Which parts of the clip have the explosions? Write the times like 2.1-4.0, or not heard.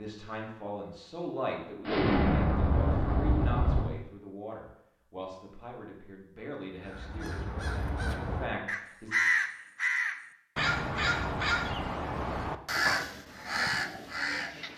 1.9-3.9.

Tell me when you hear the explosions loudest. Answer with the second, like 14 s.
2 s.